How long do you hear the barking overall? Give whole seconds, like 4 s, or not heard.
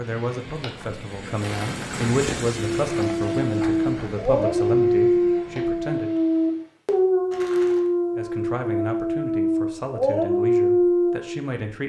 9 s.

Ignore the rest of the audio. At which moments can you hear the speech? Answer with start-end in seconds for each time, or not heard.
0.0-6.1, 8.2-11.8.